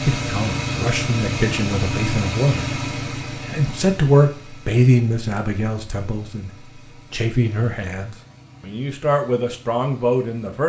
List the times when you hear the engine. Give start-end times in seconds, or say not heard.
0.0-10.6.